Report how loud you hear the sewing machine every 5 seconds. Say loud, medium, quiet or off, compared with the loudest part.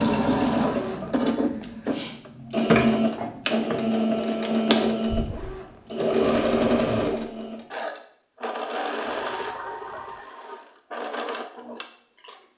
loud, loud, quiet.